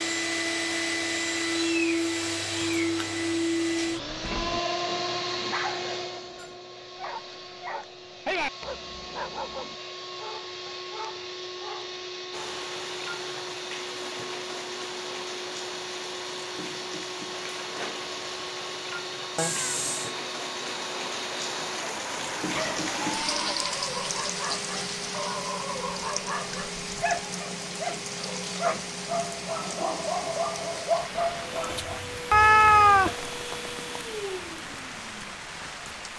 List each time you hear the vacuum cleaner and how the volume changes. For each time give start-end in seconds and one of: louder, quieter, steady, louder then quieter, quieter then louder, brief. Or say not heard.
0.0-36.1 quieter.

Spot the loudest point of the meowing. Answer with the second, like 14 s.
33 s.